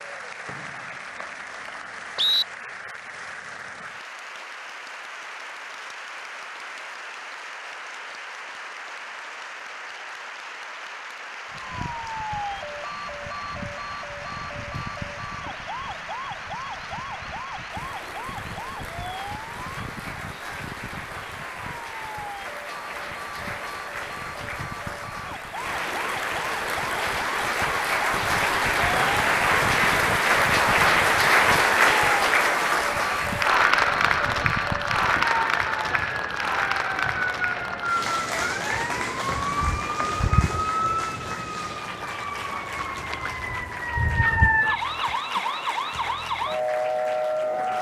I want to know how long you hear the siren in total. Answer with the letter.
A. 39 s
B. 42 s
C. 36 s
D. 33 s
C.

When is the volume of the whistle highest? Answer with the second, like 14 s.
2 s.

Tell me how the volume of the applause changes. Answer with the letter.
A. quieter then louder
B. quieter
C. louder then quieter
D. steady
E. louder
C.